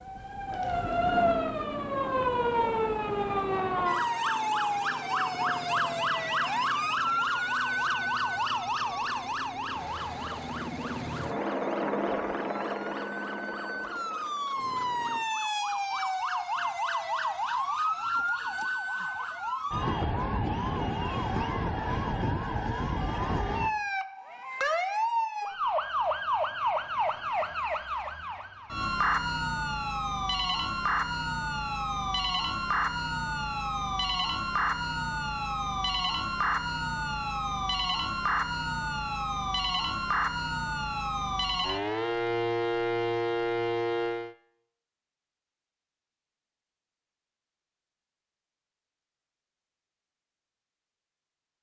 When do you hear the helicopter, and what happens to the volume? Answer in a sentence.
The helicopter can be heard from 0.0 to 15.2 s, getting louder.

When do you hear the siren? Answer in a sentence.
The siren can be heard from 0.0 to 44.4 s.